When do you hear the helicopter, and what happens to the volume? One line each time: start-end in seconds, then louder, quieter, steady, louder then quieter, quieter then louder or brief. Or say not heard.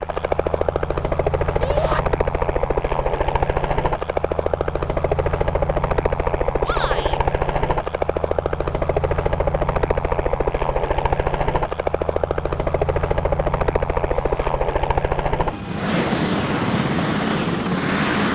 0.0-18.3 steady.